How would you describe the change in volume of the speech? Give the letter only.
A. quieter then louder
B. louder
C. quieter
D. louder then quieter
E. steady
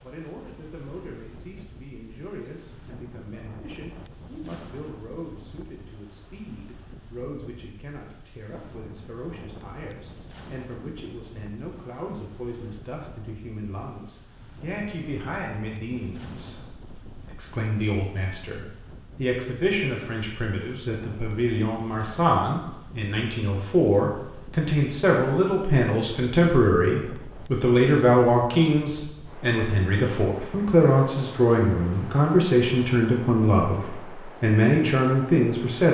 B.